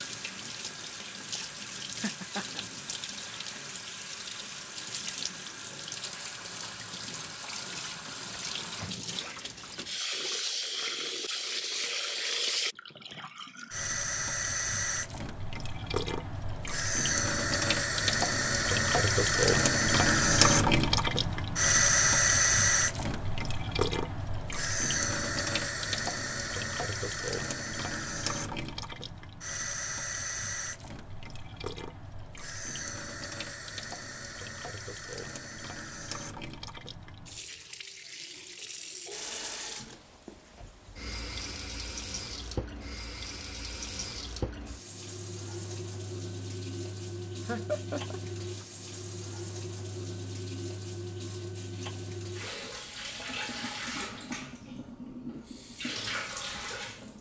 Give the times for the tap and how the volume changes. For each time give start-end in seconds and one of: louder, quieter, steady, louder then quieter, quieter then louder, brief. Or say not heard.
0.0-57.1 louder then quieter.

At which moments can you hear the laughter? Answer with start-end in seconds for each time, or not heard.
2.0-2.6, 47.5-48.2.